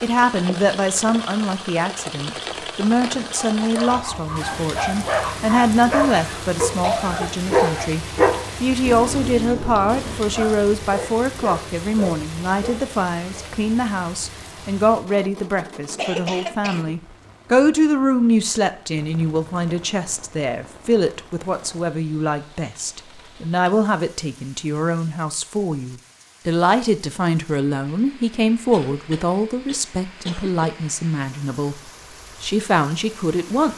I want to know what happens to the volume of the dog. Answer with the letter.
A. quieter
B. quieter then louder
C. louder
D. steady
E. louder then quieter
E.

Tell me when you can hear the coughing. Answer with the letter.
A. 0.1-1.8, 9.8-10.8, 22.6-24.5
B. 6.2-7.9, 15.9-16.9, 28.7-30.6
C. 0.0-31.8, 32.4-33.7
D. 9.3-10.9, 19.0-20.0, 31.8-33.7
B.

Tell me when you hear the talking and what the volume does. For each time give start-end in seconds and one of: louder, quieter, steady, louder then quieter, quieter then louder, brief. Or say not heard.
0.0-31.8 steady
32.4-33.7 brief.